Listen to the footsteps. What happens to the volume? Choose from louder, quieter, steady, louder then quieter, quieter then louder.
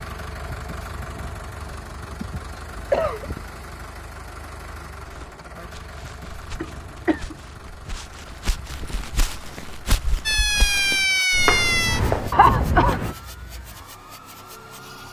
louder.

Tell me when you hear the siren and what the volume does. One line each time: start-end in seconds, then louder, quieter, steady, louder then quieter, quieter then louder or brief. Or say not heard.
10.2-15.0 quieter.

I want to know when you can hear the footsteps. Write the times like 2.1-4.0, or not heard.
5.0-12.3.